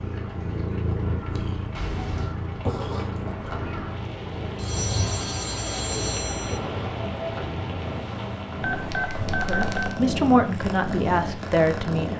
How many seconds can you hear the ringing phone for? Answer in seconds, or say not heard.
4 s.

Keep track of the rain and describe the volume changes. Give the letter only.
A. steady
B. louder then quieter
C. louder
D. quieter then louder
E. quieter
B.